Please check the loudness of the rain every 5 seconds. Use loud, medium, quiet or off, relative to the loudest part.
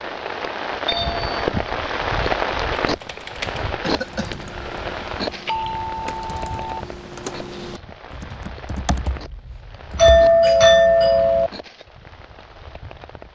loud, medium, quiet.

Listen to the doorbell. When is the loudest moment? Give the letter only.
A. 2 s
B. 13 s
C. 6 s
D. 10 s
D.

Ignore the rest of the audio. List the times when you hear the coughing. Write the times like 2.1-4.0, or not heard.
3.8-4.5.